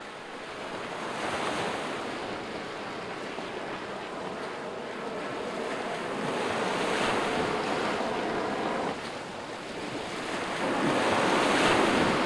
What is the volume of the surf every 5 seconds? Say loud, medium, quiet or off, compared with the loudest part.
medium, medium, loud.